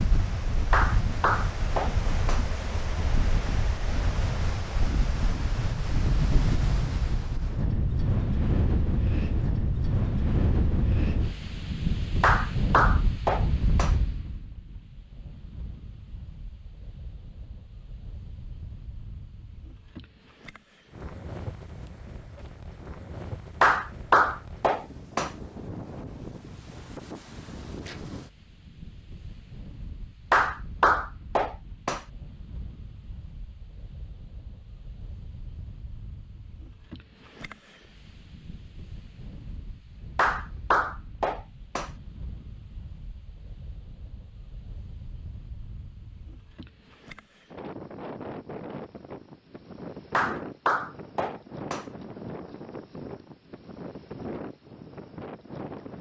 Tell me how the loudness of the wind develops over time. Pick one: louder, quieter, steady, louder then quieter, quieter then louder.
quieter then louder.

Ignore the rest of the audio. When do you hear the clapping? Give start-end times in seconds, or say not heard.
0.7-2.4, 12.2-13.9, 23.6-25.3, 30.3-32.0, 40.1-41.9, 50.1-51.9.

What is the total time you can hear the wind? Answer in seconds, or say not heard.
56 s.